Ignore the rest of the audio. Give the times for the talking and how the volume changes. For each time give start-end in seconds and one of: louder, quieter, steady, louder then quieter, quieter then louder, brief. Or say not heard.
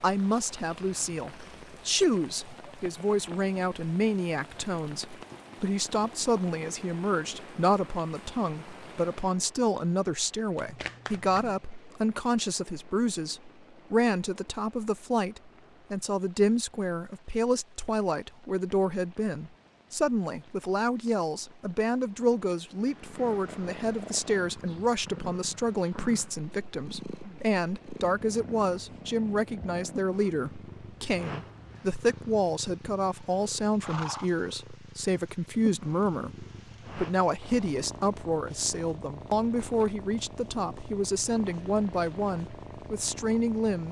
0.0-43.8 steady.